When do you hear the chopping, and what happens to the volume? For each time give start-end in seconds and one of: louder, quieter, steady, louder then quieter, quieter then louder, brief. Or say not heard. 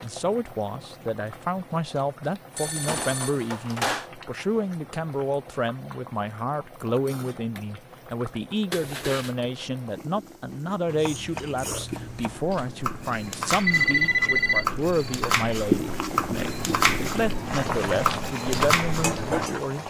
10.8-19.8 louder.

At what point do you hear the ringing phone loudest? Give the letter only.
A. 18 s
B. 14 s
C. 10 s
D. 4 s
B.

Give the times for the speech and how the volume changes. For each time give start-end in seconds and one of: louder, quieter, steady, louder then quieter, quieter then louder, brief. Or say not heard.
0.0-19.8 steady.